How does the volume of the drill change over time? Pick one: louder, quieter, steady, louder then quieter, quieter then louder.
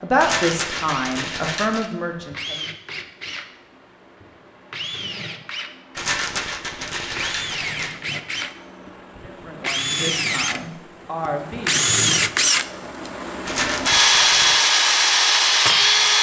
louder.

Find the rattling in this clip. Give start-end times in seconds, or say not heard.
0.1-1.9, 6.0-8.0, 13.4-14.7.